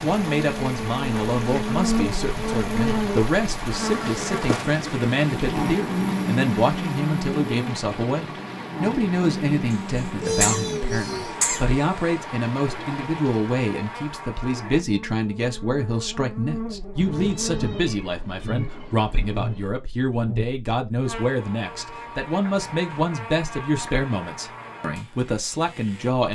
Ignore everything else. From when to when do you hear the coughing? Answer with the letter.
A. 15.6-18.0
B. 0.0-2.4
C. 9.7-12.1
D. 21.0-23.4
C.